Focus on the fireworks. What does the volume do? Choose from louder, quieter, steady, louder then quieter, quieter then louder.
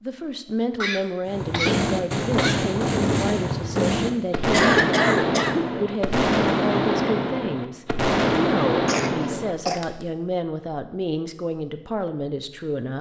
steady.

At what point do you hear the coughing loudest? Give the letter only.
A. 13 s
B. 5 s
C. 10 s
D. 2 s
B.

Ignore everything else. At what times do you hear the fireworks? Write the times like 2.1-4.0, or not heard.
1.2-10.1.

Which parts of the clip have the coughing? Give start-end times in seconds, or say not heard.
0.8-2.6, 4.5-5.7, 8.8-9.8.